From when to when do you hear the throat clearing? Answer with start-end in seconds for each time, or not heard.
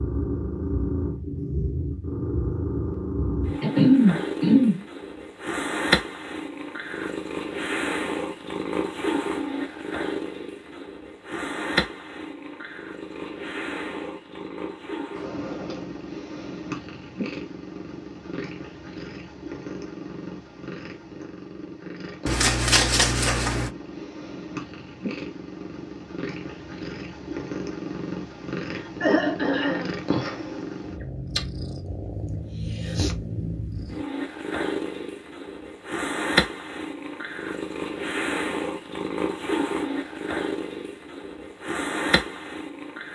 3.6-4.8, 28.7-29.9.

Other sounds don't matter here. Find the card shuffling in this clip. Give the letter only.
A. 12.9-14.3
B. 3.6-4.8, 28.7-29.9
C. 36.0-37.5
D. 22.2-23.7
D.